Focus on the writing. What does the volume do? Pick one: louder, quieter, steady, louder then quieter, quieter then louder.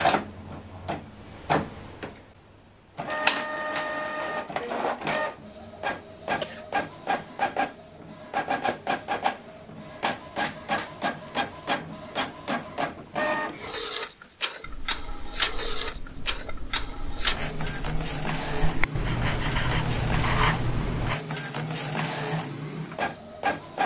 louder.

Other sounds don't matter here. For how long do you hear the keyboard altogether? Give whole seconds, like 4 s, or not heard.
not heard.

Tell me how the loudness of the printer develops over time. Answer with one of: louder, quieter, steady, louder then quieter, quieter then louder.
steady.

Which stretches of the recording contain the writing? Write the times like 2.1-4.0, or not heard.
14.6-21.1.